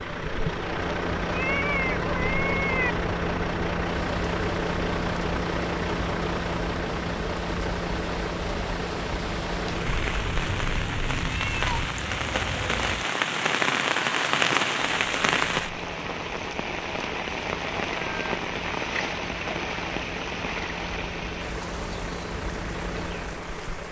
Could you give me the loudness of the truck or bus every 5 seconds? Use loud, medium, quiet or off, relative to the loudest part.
loud, loud, medium, medium, medium.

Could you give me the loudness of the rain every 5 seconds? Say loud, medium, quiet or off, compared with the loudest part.
quiet, medium, loud, loud, medium.